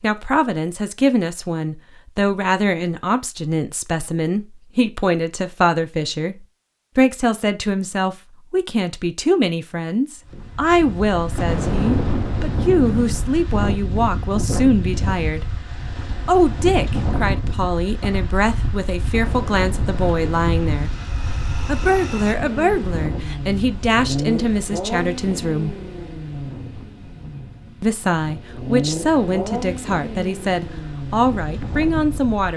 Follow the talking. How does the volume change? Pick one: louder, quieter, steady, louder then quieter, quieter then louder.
steady.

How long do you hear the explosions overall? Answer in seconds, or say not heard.
4 s.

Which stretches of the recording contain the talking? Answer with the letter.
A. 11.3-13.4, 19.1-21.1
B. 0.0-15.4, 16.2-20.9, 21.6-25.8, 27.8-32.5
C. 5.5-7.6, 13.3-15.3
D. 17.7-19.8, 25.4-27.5
B.